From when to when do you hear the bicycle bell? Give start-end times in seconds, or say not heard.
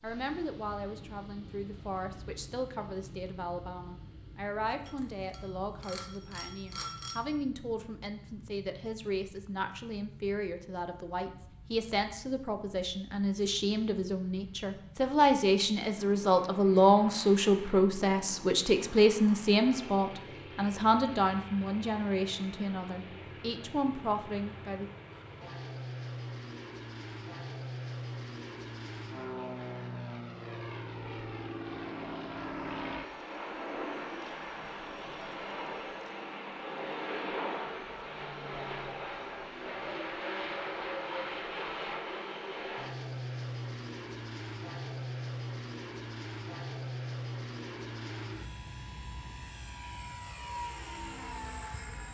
4.8-7.2.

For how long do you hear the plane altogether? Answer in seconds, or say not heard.
52 s.